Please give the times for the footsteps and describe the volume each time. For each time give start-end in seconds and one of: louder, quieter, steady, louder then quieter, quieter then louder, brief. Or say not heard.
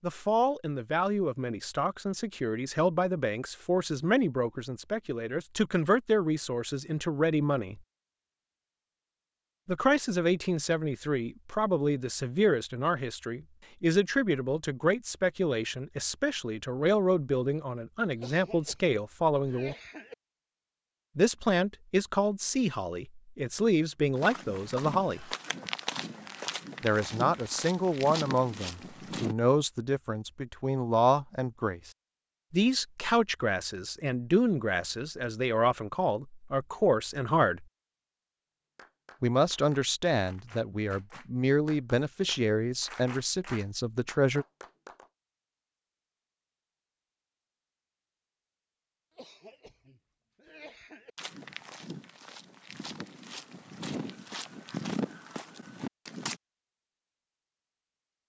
24.1-29.4 steady
51.1-56.4 louder then quieter.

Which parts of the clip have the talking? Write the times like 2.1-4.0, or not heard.
0.0-7.8, 9.7-19.8, 21.1-25.3, 26.8-31.9, 32.5-37.6, 39.2-44.5.